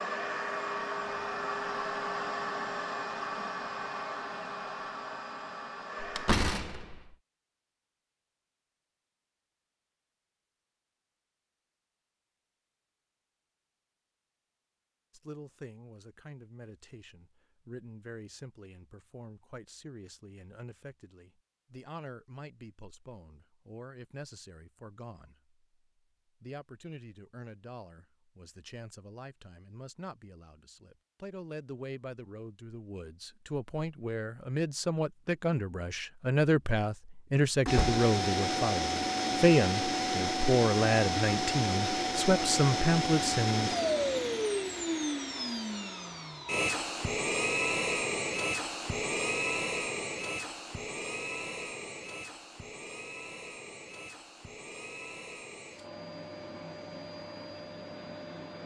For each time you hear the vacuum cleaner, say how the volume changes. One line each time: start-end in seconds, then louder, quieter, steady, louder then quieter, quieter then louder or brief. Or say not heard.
0.0-6.3 quieter
37.6-58.6 quieter.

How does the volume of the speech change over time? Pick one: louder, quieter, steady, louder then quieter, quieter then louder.
louder.